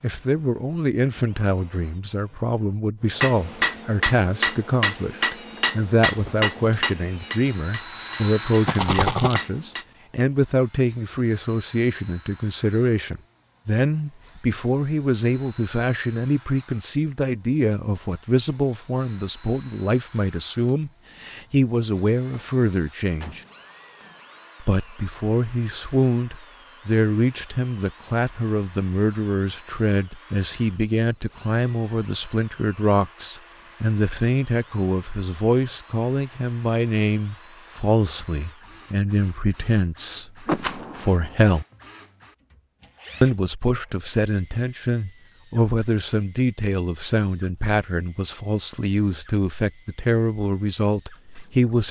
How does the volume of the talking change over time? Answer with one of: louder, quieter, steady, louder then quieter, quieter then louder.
steady.